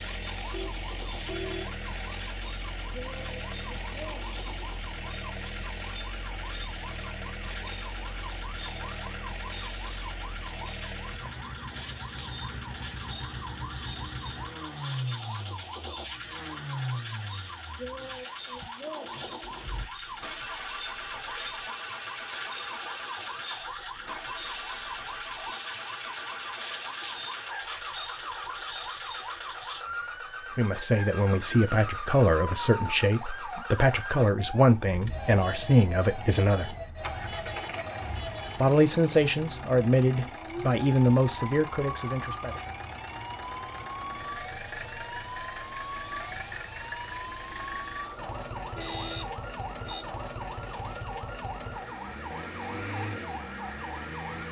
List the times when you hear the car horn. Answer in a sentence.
You can hear the car horn from 0.5 to 1.7 s and from 48.8 to 50.0 s.